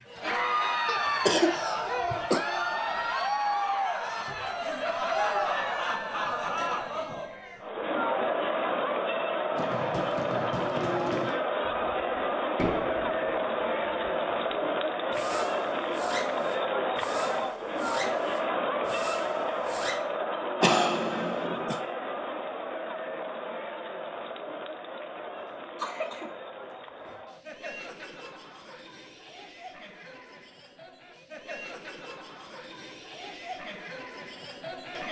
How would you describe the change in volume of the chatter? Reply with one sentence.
The volume of the chatter goes down.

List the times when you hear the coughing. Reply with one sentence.
The coughing can be heard from 0.8 to 2.4 s, from 20.6 to 21.8 s and from 25.4 to 27.1 s.